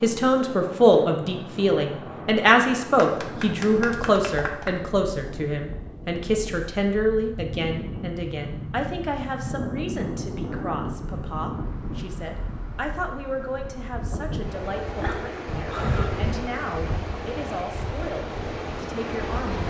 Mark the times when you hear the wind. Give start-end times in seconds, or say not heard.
0.0-19.6.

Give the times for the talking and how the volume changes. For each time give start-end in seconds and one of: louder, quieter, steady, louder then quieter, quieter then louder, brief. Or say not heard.
0.0-19.6 quieter.